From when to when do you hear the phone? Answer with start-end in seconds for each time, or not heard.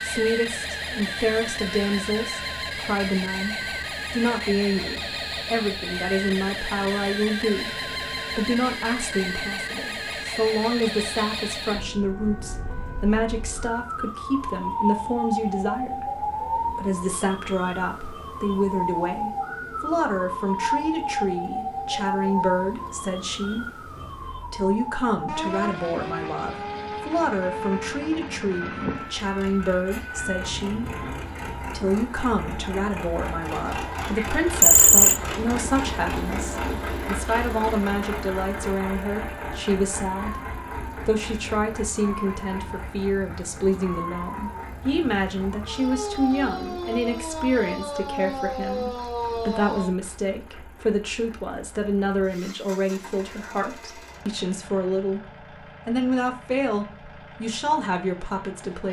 34.1-35.2.